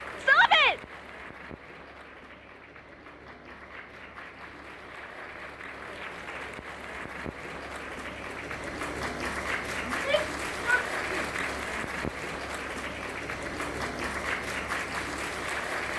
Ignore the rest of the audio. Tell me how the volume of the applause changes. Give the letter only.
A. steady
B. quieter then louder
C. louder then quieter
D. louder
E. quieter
D.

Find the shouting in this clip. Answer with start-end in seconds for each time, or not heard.
0.1-0.8, 9.8-11.2.